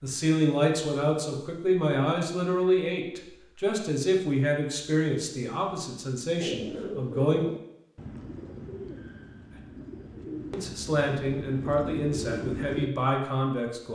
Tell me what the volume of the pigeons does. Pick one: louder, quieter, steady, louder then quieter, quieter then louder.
quieter then louder.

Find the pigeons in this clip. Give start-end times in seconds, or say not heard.
6.4-12.9.